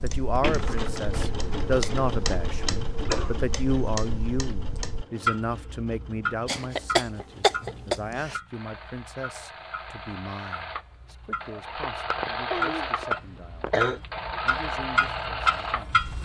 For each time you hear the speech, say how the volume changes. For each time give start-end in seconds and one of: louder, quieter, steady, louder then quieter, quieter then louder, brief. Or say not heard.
0.0-16.0 quieter.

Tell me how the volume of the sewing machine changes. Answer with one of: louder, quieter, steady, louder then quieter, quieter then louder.
quieter then louder.